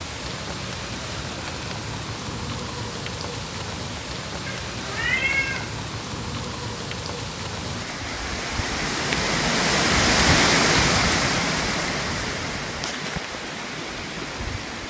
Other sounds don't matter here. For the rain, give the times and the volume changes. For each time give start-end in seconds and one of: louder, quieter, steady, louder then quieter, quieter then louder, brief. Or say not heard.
0.0-14.8 louder then quieter.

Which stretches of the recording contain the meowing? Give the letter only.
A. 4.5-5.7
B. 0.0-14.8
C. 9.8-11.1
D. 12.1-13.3
A.